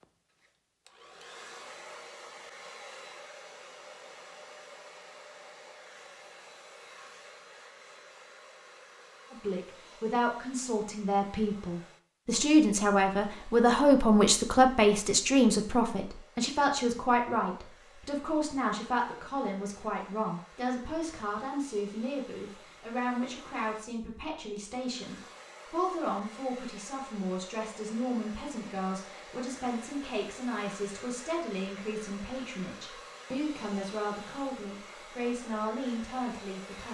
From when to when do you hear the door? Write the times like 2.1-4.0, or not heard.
not heard.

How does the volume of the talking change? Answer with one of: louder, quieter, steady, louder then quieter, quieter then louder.
quieter.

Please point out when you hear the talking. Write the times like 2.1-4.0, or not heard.
9.3-36.8.